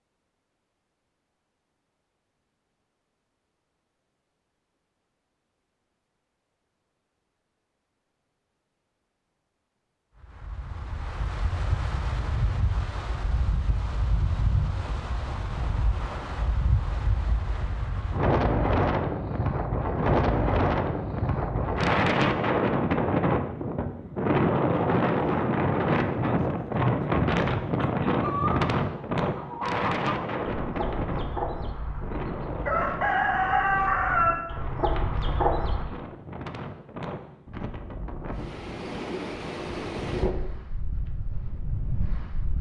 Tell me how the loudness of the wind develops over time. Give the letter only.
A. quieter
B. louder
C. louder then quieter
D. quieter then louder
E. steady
C.